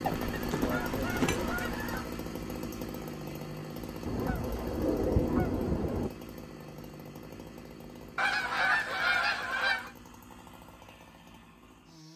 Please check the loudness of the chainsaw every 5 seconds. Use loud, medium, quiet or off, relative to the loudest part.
loud, medium, quiet.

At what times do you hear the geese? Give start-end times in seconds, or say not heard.
0.1-2.1, 4.0-6.1, 8.2-9.9.